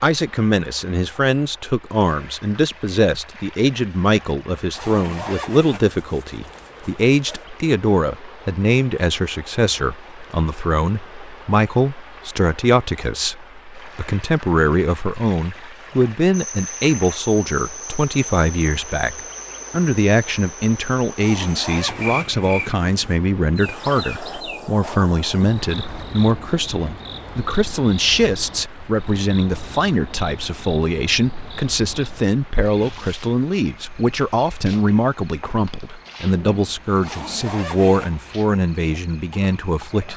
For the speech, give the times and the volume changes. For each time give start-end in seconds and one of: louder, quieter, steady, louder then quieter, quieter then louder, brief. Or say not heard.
0.0-40.1 steady.